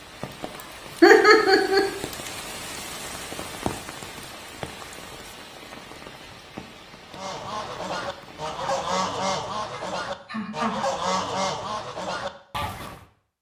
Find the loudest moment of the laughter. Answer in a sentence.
The volume of the laughter peaks at 1 second.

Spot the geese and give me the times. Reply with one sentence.
You can hear the geese from 7.1 to 13.1 s.